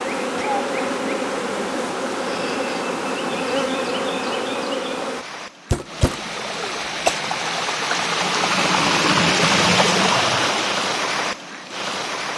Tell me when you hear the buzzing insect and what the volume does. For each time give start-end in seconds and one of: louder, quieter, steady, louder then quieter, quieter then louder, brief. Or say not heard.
0.0-5.2 steady.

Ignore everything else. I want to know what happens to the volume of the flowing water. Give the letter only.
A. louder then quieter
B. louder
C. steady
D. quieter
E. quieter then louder
B.